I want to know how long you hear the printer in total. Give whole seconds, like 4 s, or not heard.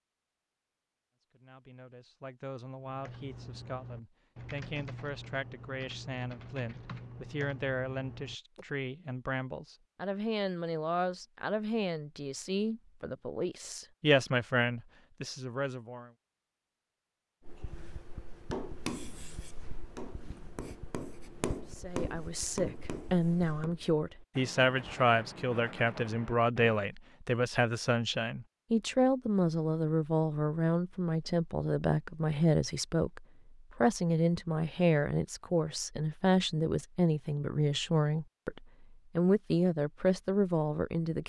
not heard.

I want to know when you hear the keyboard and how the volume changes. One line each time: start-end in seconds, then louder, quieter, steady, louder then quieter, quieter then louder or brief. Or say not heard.
2.9-8.8 steady.